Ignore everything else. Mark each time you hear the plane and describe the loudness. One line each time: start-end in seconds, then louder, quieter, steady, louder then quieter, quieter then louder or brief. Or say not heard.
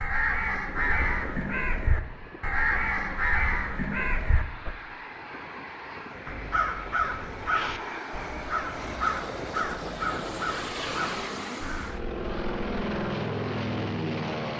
0.0-14.5 louder.